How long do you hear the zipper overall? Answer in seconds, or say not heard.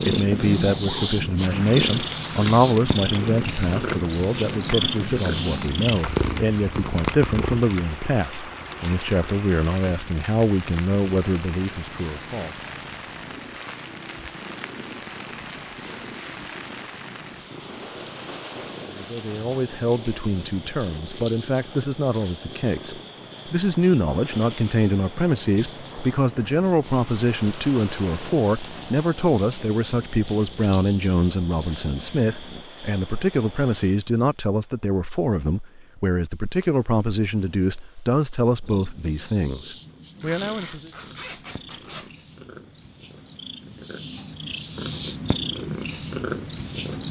3 s.